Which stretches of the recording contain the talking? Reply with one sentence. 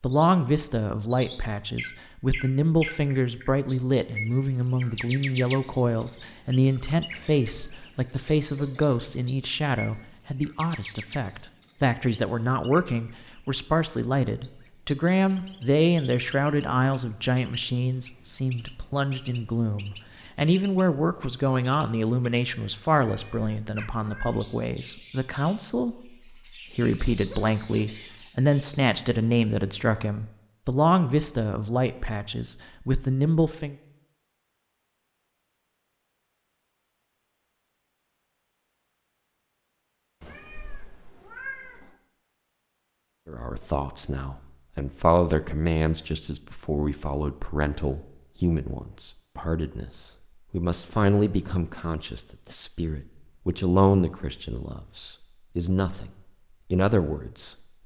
You can hear the talking from 0.0 to 33.8 s, from 43.2 to 56.1 s and from 56.7 to 57.5 s.